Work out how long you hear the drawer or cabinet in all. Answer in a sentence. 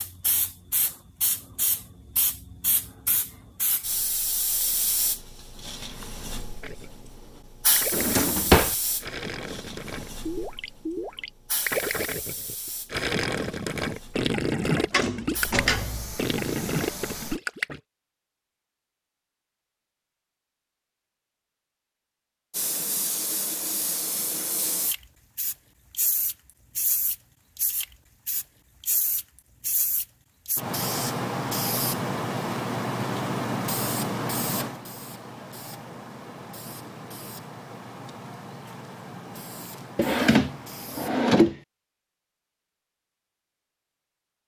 The drawer or cabinet can be heard for 4 seconds in total.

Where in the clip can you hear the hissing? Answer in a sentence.
The hissing can be heard from 0.0 to 17.4 s and from 22.5 to 41.2 s.